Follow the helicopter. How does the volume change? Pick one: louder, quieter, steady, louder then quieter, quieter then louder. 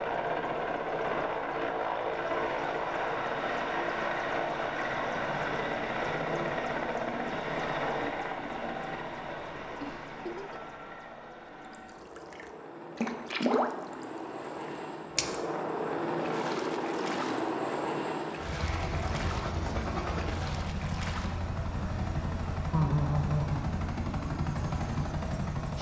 quieter then louder.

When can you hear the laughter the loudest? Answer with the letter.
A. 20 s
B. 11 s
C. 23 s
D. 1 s
C.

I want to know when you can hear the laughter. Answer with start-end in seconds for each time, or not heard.
9.8-10.6, 22.7-23.6.